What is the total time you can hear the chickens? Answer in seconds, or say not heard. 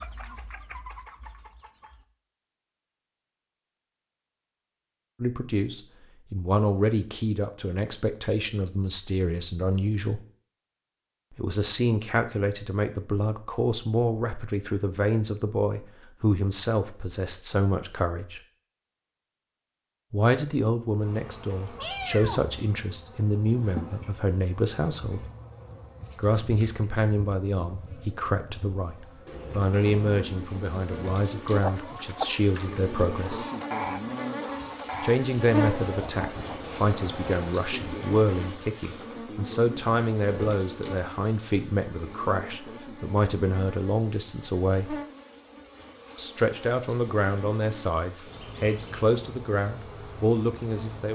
8 s.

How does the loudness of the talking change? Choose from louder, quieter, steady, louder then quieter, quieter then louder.
steady.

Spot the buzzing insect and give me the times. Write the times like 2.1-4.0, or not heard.
21.0-51.1.